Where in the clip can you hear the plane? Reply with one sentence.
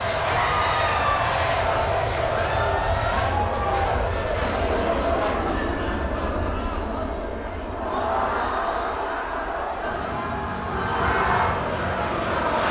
The plane can be heard from 0.0 to 12.6 s.